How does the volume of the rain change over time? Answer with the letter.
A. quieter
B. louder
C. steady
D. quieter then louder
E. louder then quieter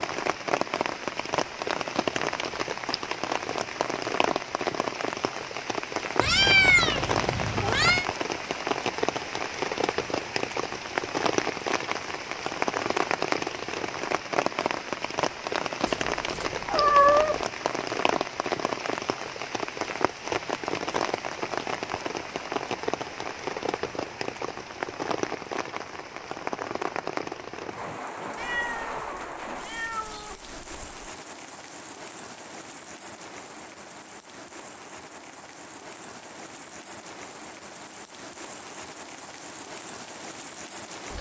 A.